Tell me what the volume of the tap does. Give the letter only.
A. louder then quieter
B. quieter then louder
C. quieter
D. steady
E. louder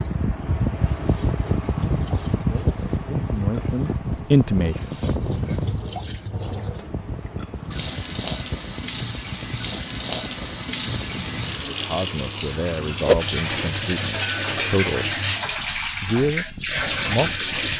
E.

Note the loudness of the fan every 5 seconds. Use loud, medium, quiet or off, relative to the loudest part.
loud, medium, quiet, quiet.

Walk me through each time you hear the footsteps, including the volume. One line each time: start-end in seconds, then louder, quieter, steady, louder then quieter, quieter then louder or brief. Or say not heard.
not heard.